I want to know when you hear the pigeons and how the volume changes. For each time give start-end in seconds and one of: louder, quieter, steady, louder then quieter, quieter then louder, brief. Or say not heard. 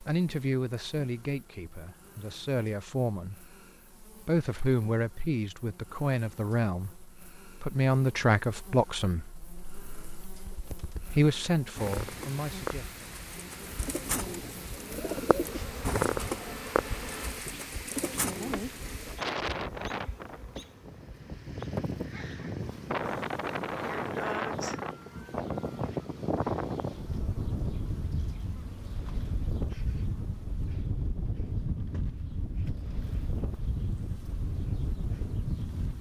10.3-19.1 louder then quieter.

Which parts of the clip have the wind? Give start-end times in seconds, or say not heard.
11.8-35.9.